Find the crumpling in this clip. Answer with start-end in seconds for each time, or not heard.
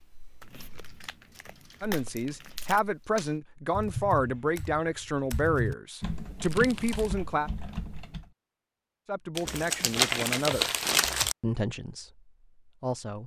0.4-2.8, 6.4-7.2, 9.3-11.3.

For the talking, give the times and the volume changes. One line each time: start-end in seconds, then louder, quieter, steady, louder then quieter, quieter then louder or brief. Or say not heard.
1.8-7.5 steady
9.1-10.7 brief
11.4-13.2 brief.